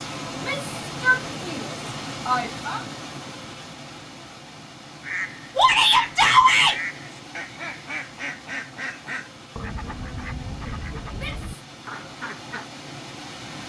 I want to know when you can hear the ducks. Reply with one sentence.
You can hear the ducks from 5.0 to 12.7 s.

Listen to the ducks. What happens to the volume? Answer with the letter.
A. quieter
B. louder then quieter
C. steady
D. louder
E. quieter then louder
C.